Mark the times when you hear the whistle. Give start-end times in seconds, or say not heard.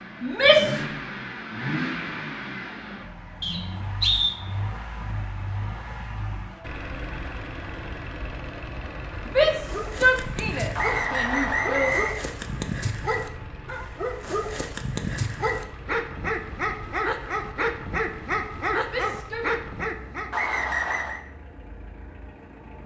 3.4-4.3, 10.8-12.2, 20.3-21.2.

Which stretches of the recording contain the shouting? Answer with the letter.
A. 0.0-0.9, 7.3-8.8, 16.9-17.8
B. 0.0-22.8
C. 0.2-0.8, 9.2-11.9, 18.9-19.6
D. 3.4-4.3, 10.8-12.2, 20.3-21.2
C.